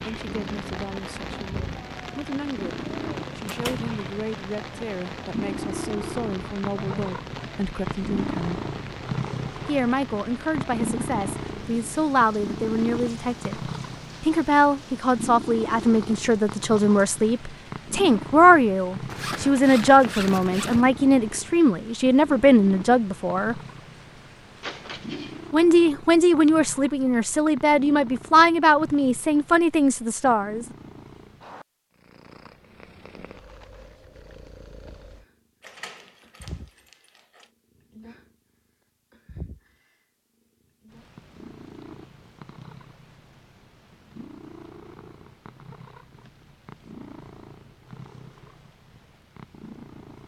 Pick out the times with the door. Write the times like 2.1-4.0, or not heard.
3.5-3.9, 24.6-25.4, 35.6-37.5.